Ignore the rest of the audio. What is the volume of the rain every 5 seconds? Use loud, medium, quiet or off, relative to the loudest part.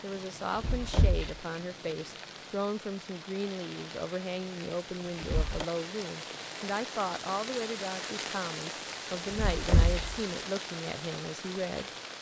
medium, loud, loud.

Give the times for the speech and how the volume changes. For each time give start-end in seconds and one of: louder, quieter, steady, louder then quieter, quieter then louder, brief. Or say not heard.
0.0-11.9 steady.